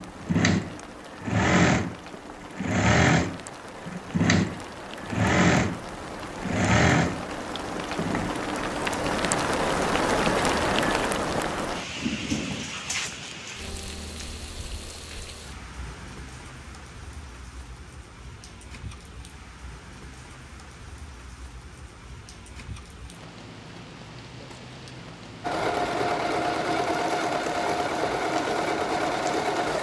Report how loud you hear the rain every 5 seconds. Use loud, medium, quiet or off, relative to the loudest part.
quiet, loud, loud, quiet, quiet, quiet.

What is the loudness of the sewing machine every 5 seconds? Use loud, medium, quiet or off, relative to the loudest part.
loud, loud, off, off, off, loud.